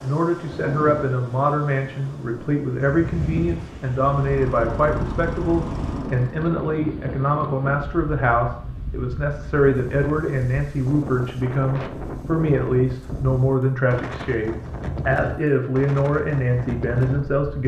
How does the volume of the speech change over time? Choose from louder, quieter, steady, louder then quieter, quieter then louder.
steady.